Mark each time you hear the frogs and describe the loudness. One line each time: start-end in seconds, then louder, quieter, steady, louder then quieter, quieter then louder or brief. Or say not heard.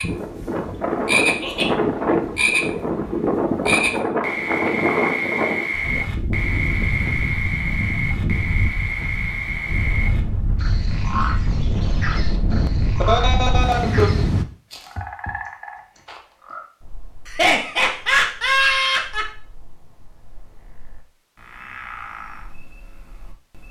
0.0-23.6 quieter.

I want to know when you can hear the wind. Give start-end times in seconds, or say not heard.
0.0-14.4.